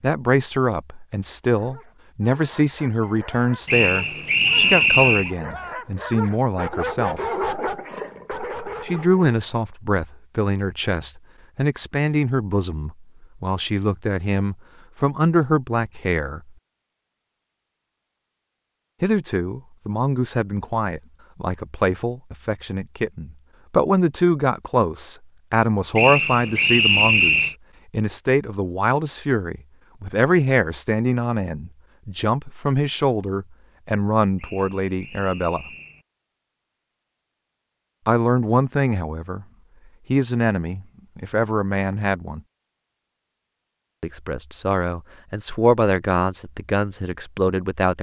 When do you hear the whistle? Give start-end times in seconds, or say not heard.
3.6-5.3, 25.9-27.6, 34.4-36.0.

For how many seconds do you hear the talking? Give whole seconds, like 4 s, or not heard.
39 s.